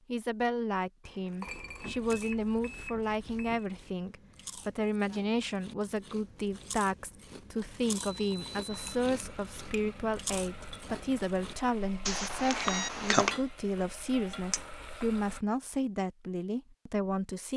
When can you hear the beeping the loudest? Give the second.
13 s.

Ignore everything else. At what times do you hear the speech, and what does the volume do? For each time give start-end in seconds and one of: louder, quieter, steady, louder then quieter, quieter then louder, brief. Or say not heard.
0.1-17.5 steady.